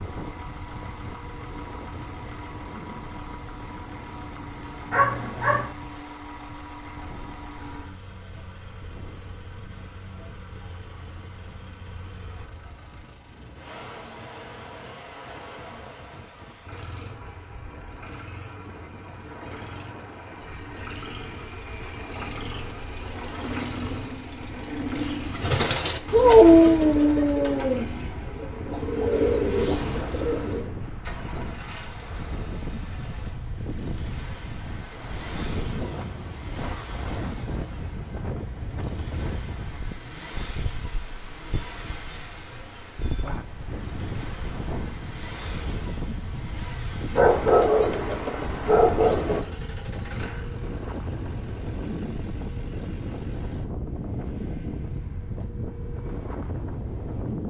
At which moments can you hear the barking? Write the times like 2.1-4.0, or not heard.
4.9-5.7, 26.1-27.9, 47.1-49.4.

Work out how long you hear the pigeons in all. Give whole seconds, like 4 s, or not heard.
6 s.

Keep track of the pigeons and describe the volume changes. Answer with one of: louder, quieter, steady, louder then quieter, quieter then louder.
quieter then louder.